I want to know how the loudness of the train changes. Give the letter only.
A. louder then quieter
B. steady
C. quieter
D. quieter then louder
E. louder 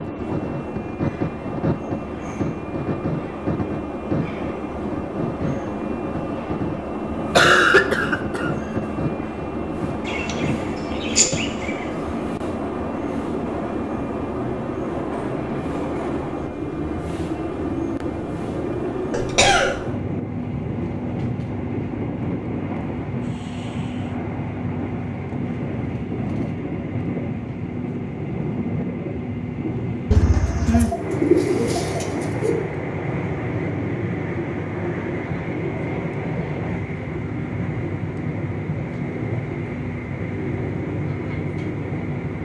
B.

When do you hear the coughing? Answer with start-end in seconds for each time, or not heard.
7.3-8.5, 19.1-19.8, 30.1-30.9.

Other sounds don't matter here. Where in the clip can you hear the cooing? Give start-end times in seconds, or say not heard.
10.1-12.0, 30.7-32.5.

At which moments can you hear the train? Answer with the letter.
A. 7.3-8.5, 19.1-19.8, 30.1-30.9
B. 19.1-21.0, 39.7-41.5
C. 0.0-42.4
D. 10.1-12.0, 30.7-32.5
C.